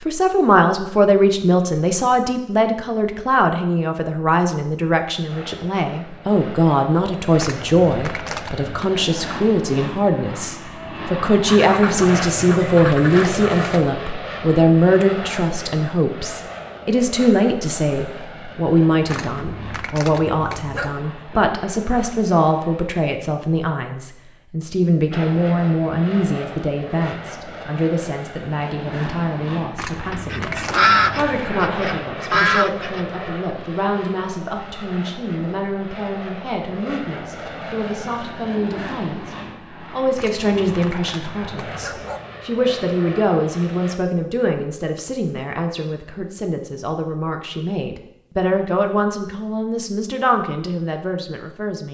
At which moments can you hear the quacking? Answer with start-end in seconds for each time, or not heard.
11.4-13.9, 30.1-33.0.